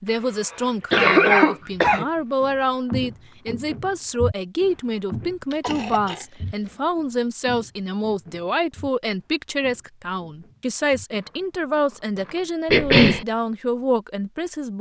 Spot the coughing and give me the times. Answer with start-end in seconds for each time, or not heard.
0.5-2.0, 5.5-6.8, 12.7-13.2.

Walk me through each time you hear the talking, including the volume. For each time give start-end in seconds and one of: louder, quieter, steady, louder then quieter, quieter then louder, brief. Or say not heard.
0.0-14.7 steady.